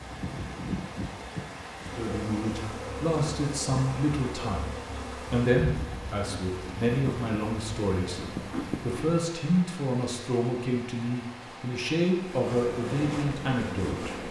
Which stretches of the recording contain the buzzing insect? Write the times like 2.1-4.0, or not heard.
0.0-9.1, 12.1-14.2.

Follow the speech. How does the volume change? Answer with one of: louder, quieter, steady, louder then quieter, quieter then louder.
steady.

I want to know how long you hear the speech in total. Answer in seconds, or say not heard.
12 s.